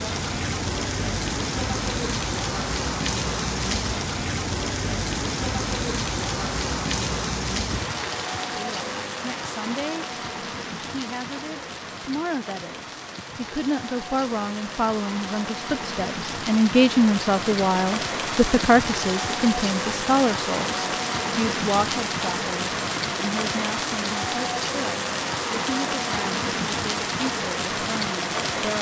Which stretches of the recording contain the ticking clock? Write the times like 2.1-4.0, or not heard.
not heard.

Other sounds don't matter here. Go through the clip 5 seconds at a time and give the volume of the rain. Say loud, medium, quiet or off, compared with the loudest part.
loud, loud, medium, loud, loud, loud.